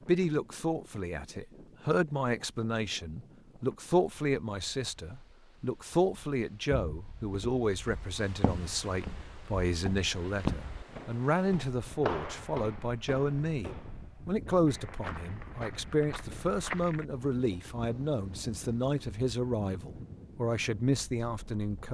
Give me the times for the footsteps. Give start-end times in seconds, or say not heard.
6.7-17.1.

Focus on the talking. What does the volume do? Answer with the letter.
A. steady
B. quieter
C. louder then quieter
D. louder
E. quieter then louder
A.